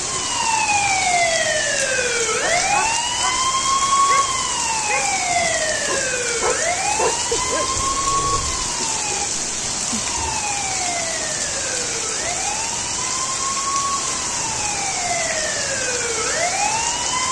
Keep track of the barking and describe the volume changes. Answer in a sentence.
The volume of the barking goes up, then down.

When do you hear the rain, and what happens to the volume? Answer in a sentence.
You can hear the rain from 0.0 to 17.2 s, at a steady volume.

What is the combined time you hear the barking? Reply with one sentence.
The barking can be heard for 6 seconds in total.